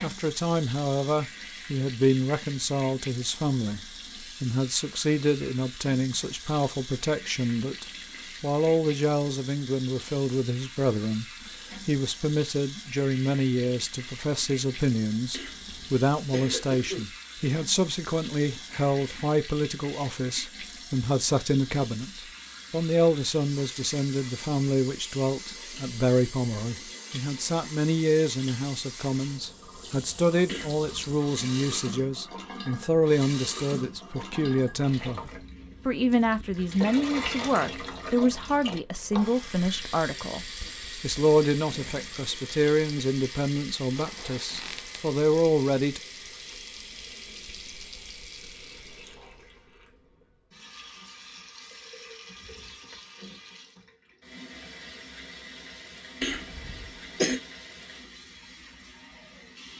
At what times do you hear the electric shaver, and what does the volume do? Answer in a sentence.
The electric shaver can't be heard in this clip.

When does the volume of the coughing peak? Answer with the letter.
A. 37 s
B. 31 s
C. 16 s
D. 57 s
D.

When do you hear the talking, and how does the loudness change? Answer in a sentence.
You can hear the talking from 0.0 to 46.0 s, at a steady volume.